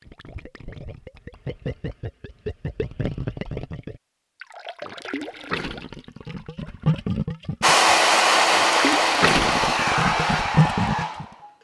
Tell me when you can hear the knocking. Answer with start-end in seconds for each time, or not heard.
not heard.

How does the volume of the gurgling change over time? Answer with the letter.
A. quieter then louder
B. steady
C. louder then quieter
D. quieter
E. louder
E.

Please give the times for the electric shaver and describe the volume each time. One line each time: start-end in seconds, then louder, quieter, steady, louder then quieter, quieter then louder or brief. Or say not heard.
not heard.